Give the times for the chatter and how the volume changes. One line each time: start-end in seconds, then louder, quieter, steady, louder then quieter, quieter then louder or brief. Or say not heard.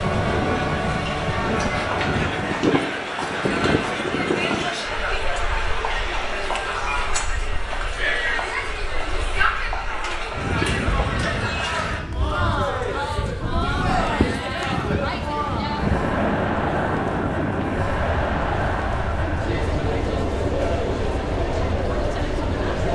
0.0-22.9 steady.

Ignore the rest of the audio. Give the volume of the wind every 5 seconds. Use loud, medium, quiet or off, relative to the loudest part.
loud, quiet, loud, loud, medium.